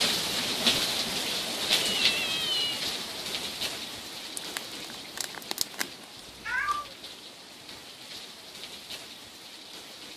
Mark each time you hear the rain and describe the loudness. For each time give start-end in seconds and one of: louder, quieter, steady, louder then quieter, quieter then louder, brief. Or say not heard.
0.0-10.1 quieter.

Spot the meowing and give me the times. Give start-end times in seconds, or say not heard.
2.0-2.8, 6.2-7.0.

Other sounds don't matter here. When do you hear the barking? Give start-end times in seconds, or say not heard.
not heard.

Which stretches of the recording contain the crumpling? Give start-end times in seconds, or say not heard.
4.3-6.0.